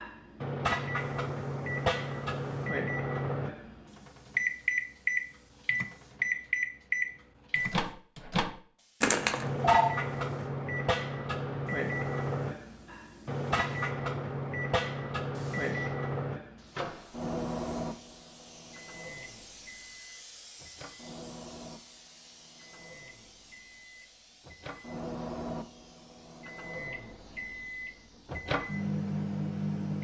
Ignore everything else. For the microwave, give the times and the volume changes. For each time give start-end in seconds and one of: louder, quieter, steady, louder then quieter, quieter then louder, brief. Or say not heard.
0.0-30.0 quieter then louder.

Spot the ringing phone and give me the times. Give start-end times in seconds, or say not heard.
9.0-9.9.